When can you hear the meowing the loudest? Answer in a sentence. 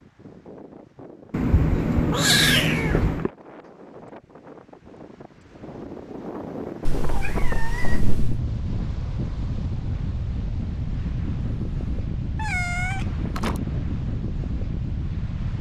The volume of the meowing peaks at 2 seconds.